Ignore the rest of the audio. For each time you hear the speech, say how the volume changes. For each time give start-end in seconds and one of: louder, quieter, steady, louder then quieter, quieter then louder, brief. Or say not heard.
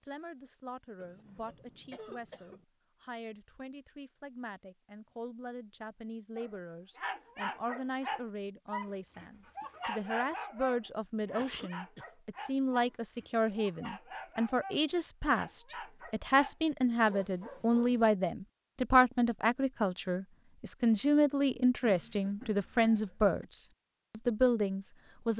0.0-25.3 louder.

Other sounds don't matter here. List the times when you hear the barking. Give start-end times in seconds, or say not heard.
6.3-18.1.